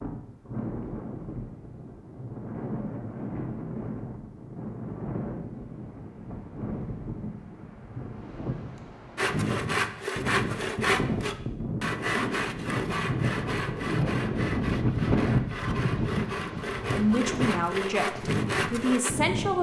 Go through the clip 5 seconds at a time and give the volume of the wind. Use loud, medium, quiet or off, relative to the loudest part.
medium, medium, loud, loud.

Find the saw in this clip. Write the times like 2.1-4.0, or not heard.
9.2-19.1.